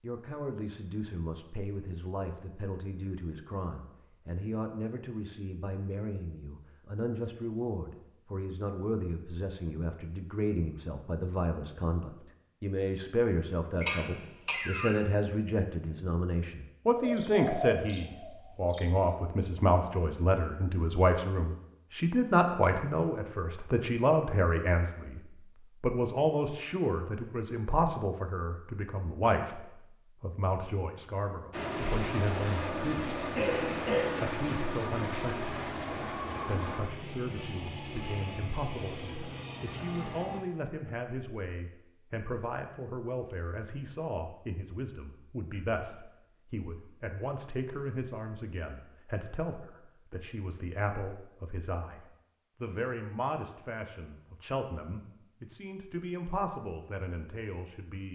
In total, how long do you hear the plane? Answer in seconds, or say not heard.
9 s.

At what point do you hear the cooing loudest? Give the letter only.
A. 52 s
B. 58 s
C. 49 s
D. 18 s
D.